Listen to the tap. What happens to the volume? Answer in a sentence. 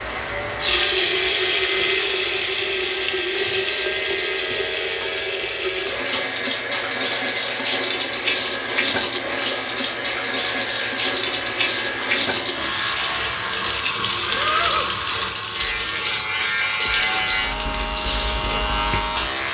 The loudness of the tap goes down.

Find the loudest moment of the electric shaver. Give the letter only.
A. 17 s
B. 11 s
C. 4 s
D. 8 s
A.